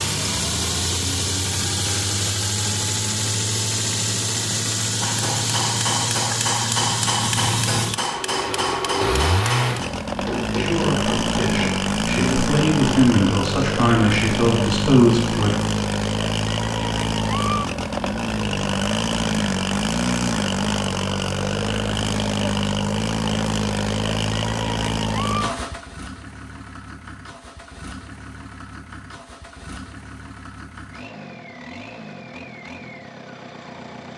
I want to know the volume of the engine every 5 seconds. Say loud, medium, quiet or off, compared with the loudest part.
loud, loud, loud, loud, loud, medium, quiet.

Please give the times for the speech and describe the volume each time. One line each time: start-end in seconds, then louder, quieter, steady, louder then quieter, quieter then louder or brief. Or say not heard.
10.5-15.5 louder.